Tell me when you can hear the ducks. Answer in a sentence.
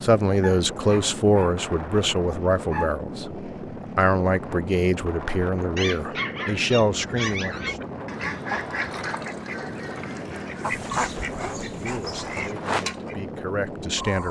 You can hear the ducks from 7.0 to 13.2 s.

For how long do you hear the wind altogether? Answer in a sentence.
You can hear the wind for 14 seconds altogether.